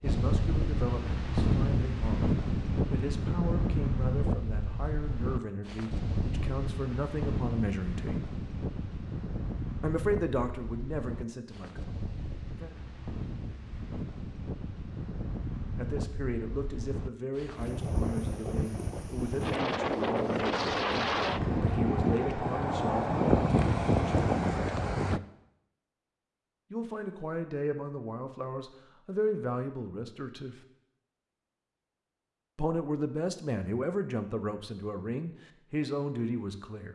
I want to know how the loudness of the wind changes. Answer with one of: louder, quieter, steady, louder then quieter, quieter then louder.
quieter then louder.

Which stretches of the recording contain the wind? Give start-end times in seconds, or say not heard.
0.0-25.2.